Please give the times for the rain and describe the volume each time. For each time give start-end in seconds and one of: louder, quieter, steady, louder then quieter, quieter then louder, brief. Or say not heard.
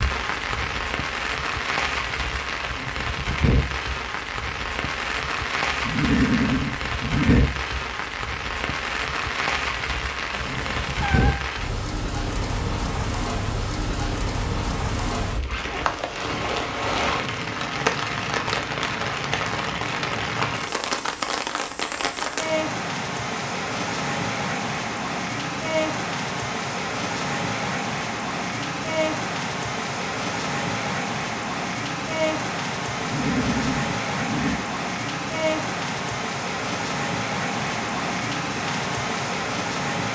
0.0-40.1 steady.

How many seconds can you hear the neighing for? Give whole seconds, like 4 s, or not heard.
3 s.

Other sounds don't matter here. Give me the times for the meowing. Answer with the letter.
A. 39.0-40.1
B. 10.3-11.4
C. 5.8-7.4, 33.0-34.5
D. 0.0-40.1
B.